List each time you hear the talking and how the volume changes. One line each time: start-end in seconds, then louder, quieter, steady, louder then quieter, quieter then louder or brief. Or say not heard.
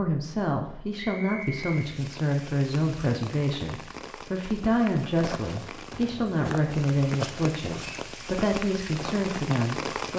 0.0-10.1 steady.